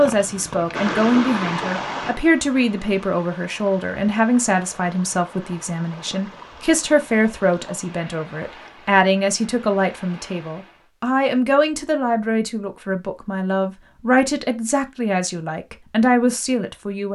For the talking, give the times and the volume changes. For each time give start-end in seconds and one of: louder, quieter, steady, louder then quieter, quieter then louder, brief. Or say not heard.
0.0-17.1 steady.